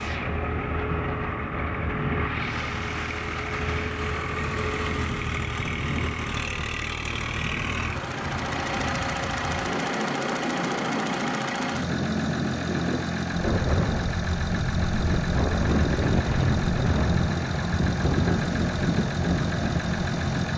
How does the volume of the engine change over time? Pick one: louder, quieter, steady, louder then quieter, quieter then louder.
steady.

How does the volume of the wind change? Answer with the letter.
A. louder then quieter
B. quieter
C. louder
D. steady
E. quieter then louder
C.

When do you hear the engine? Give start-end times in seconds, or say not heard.
0.0-20.5.